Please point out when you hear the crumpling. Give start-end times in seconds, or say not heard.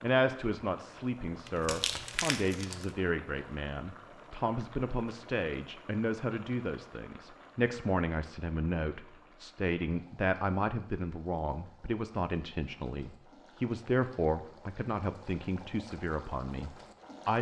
1.4-2.9.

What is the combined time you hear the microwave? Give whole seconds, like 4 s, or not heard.
not heard.